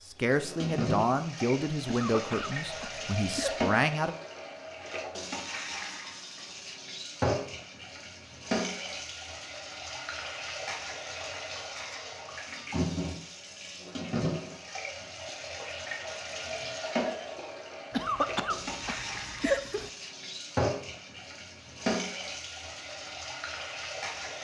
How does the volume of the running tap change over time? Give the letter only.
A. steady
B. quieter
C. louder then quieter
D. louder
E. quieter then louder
A.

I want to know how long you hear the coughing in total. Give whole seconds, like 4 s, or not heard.
4 s.